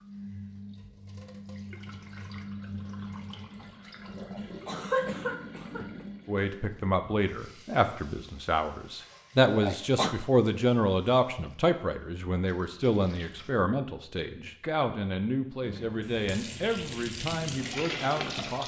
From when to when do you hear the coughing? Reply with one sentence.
You can hear the coughing from 4.2 to 6.0 s and from 9.4 to 10.2 s.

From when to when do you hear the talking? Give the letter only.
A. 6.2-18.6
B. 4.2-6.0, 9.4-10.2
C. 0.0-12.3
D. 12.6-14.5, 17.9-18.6
A.